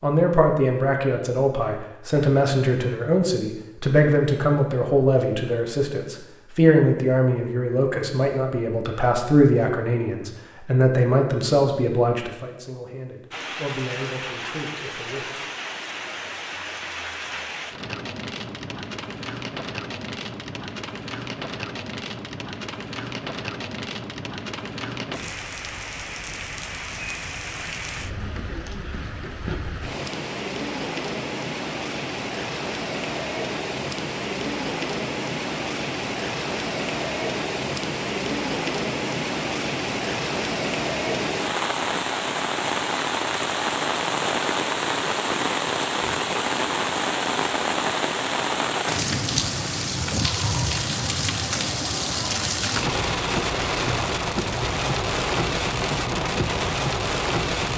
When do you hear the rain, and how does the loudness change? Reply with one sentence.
You can hear the rain from 13.3 to 57.7 s, getting louder.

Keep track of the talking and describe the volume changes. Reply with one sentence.
The loudness of the talking goes down.